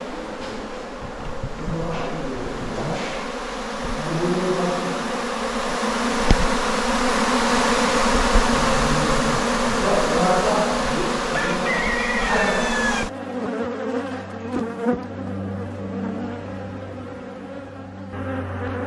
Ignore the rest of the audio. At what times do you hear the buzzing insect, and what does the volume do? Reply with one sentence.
The buzzing insect can be heard from 0.0 to 18.8 s, getting louder then quieter.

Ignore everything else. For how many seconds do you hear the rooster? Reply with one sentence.
You can hear the rooster for 2 seconds altogether.